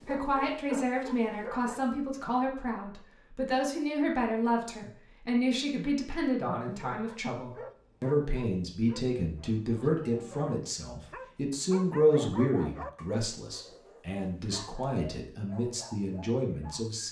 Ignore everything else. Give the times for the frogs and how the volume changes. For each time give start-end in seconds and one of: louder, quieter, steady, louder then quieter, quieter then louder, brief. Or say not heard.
not heard.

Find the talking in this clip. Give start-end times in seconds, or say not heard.
0.1-17.0.